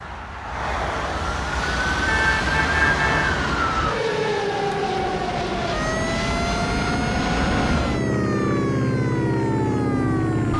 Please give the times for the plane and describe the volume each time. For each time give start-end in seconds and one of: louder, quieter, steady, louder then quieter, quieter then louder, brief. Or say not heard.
1.5-10.5 louder.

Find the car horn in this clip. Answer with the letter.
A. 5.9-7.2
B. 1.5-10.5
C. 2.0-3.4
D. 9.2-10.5
C.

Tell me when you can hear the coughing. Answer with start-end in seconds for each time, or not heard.
not heard.